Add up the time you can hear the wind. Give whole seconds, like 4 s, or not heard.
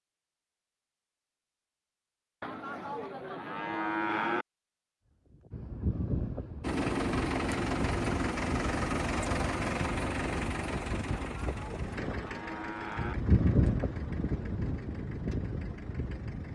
11 s.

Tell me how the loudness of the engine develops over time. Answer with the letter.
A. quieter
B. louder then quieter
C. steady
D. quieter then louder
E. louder
A.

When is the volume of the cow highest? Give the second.
4 s.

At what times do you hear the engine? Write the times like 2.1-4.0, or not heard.
6.6-16.5.